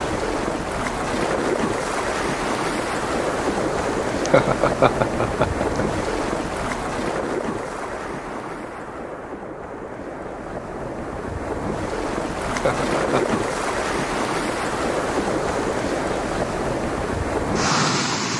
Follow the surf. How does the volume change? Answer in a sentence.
The loudness of the surf goes down, then up.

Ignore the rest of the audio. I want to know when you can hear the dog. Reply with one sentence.
You can't hear the dog here.